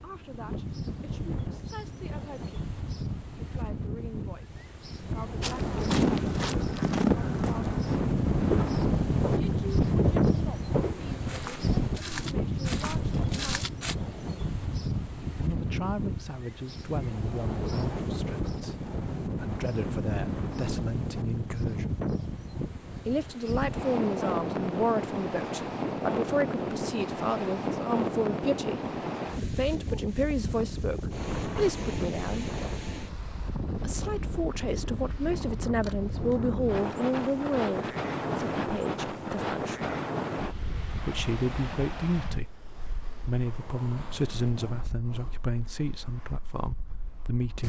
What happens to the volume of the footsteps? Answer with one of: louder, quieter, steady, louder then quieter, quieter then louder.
quieter.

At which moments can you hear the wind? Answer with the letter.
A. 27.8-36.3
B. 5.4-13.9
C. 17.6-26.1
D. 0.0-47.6
D.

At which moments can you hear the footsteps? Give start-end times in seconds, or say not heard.
5.4-13.9.